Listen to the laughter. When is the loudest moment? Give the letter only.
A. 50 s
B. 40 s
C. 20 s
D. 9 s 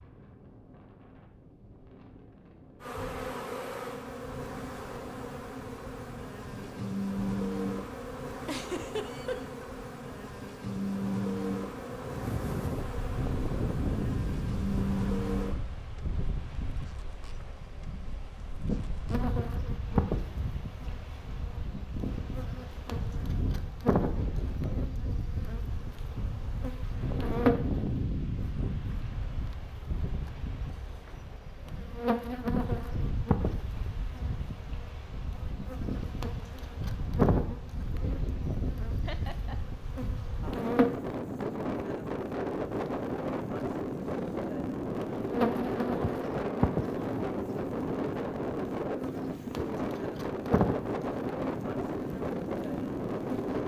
D.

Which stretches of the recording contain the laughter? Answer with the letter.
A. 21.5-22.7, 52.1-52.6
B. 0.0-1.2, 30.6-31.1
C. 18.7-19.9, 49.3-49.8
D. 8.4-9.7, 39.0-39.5
D.